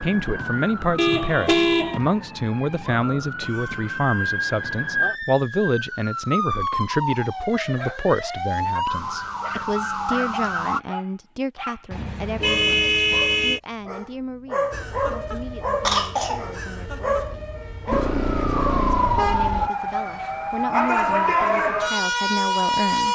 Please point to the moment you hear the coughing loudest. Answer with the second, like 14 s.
16 s.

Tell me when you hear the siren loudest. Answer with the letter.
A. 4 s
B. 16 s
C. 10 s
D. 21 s
D.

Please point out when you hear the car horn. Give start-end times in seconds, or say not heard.
0.9-2.0, 11.9-13.6, 17.9-19.7.